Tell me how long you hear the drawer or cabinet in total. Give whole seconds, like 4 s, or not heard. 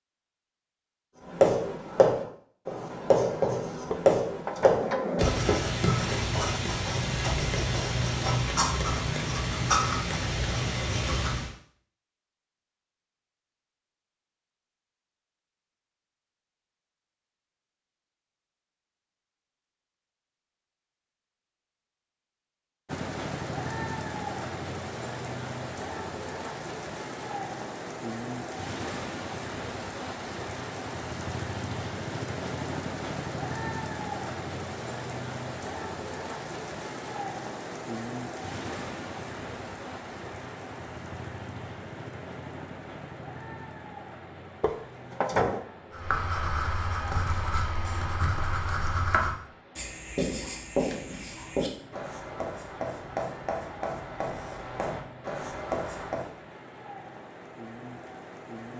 3 s.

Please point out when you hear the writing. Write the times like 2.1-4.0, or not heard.
1.2-11.5, 45.9-56.3.